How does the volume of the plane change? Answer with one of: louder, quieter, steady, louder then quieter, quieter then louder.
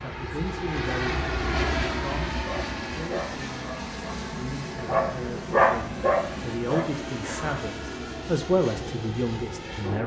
quieter.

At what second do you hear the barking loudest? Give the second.
6 s.